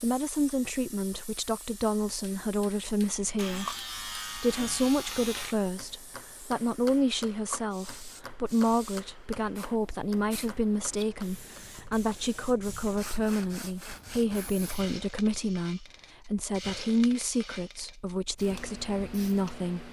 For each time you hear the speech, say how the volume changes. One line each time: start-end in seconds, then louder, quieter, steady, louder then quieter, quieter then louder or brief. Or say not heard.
0.0-19.8 steady.